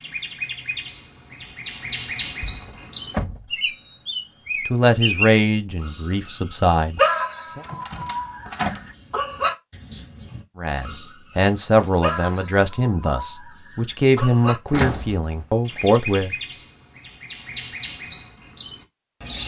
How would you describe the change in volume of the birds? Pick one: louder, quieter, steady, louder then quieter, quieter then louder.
louder then quieter.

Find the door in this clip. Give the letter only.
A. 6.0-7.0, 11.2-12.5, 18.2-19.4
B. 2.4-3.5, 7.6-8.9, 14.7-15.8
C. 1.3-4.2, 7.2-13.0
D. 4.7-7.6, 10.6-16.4
B.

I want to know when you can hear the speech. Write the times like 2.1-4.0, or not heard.
4.7-7.6, 10.6-16.4.